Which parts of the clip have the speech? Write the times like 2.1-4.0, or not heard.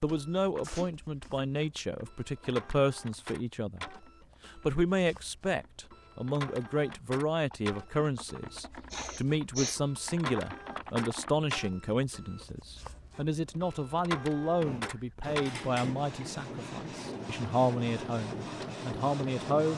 0.0-3.9, 4.5-19.7.